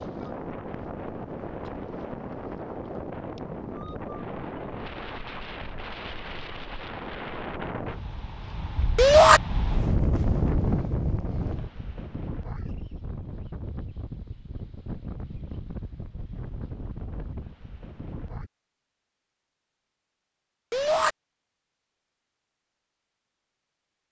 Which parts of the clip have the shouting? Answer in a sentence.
You can hear the shouting from 8.9 to 9.4 s and from 20.7 to 21.1 s.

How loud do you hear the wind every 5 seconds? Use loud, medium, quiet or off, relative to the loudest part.
loud, loud, loud, medium, off.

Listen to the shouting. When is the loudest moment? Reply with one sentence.
The volume of the shouting peaks at 9 seconds.